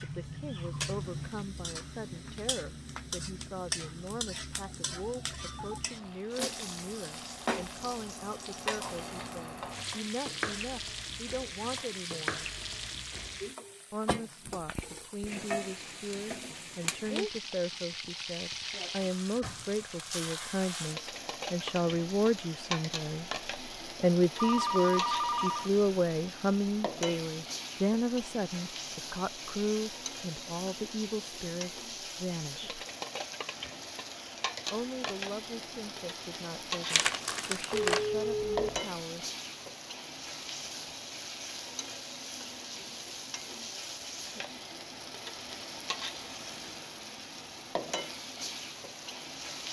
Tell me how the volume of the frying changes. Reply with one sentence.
The loudness of the frying stays about the same.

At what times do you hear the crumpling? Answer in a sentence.
The crumpling can be heard from 36.9 to 38.0 s.